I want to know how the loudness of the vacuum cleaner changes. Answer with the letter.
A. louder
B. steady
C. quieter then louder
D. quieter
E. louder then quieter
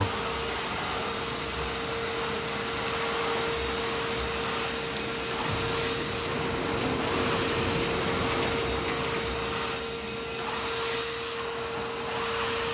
B.